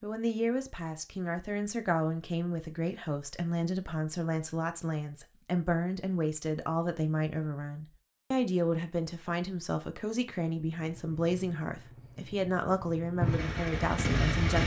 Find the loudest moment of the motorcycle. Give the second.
14 s.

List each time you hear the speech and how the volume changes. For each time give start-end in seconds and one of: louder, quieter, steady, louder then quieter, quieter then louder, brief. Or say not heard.
0.0-14.6 steady.